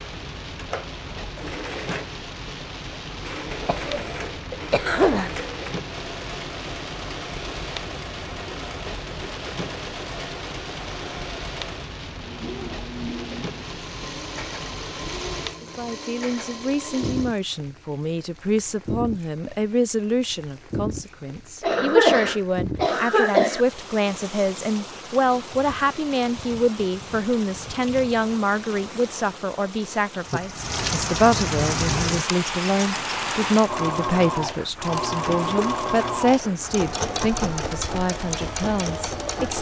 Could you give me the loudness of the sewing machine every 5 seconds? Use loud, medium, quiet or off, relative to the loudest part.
medium, medium, medium, medium, off, off, loud, loud.